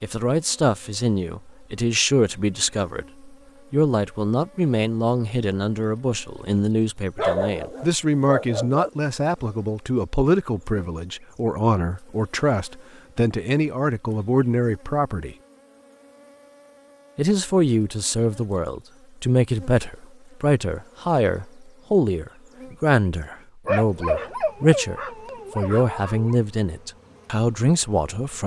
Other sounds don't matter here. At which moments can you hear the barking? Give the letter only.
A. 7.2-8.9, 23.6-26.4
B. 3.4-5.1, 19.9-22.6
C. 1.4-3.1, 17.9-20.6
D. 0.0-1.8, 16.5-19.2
A.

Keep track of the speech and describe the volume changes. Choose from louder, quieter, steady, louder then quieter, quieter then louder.
steady.